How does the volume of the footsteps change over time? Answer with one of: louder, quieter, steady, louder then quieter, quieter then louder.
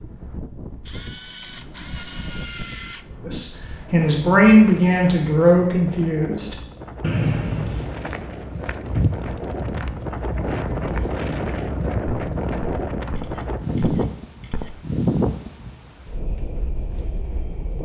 quieter.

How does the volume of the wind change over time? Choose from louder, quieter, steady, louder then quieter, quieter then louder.
louder.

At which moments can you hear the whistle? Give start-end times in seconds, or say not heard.
7.0-8.0.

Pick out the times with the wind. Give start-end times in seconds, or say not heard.
0.0-17.8.